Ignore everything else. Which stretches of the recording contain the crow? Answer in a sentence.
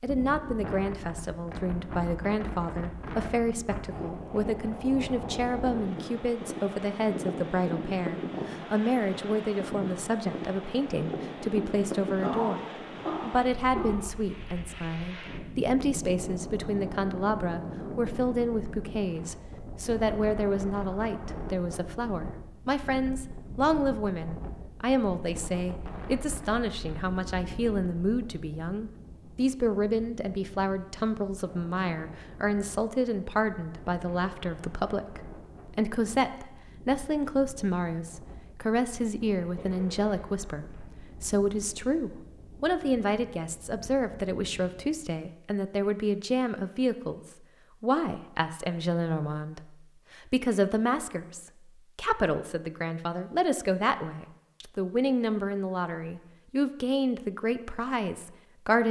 You can't hear the crow here.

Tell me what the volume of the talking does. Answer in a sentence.
The loudness of the talking stays about the same.